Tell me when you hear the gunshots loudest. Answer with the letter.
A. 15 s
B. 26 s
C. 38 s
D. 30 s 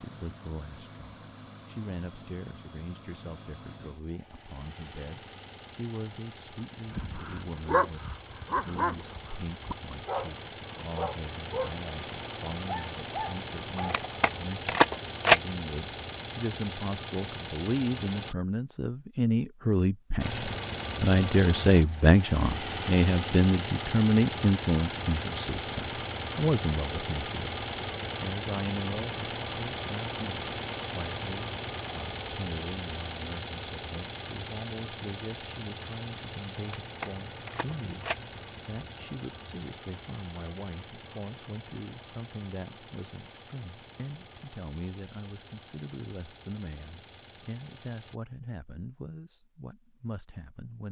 A.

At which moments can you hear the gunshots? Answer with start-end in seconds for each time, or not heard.
13.8-15.4, 36.5-38.1.